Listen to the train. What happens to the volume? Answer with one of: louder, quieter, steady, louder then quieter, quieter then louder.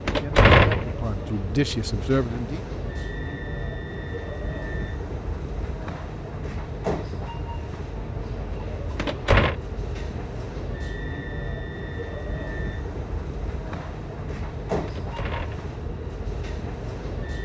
steady.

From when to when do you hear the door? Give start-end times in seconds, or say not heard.
0.1-0.9, 8.9-9.6, 14.8-15.8.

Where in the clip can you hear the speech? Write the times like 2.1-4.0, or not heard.
0.1-2.6.